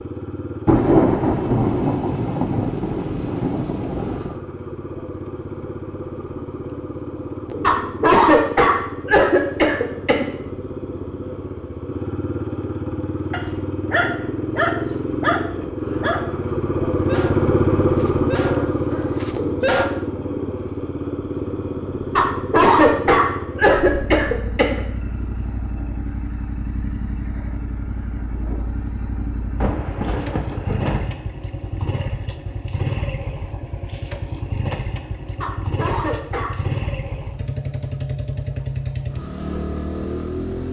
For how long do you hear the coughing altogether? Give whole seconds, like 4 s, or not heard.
6 s.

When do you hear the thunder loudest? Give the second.
1 s.